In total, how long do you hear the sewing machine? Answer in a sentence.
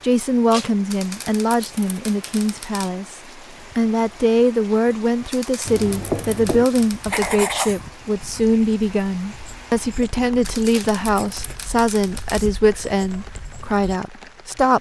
You can't hear the sewing machine here.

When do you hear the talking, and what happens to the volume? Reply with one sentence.
The talking can be heard from 0.0 to 14.7 s, at a steady volume.